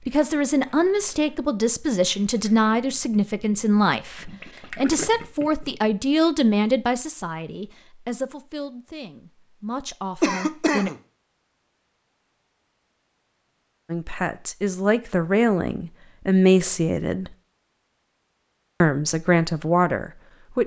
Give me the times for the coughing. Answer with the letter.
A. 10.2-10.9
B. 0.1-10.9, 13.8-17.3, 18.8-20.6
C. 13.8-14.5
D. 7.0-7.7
A.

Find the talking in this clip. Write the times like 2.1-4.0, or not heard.
0.1-10.9, 13.8-17.3, 18.8-20.6.